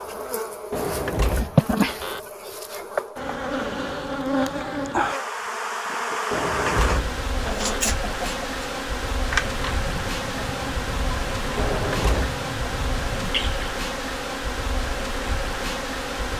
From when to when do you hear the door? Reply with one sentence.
You can hear the door from 0.7 to 2.3 s, from 6.3 to 7.8 s and from 11.6 to 12.3 s.